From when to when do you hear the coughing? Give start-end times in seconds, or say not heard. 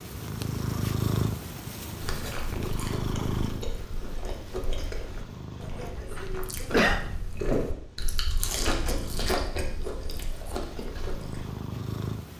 5.6-7.0.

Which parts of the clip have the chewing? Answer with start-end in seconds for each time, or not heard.
1.9-11.4.